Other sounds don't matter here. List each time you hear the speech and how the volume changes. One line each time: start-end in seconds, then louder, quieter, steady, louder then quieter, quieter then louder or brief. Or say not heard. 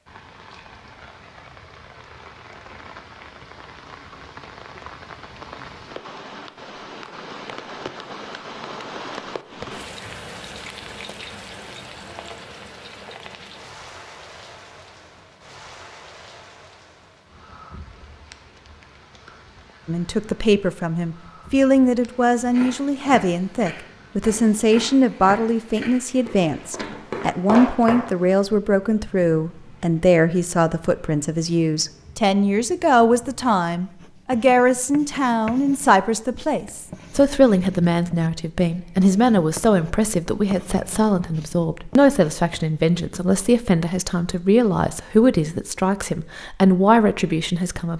19.9-47.9 steady.